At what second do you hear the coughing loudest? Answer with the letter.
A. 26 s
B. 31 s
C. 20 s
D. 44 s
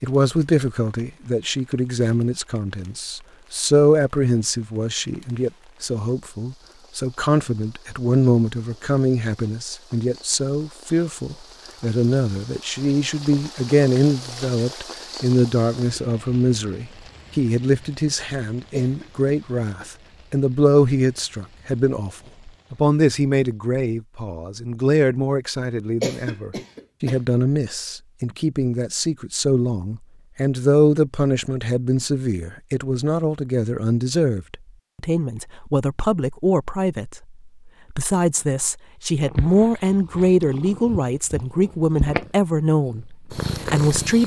A.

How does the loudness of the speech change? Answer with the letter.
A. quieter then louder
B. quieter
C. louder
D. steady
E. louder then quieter
D.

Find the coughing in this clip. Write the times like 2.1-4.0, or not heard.
18.7-19.9, 26.0-27.2.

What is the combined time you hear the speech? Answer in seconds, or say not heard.
44 s.